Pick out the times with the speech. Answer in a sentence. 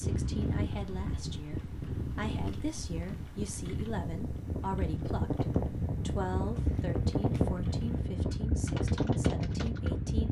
You can hear the speech from 0.0 to 10.2 s.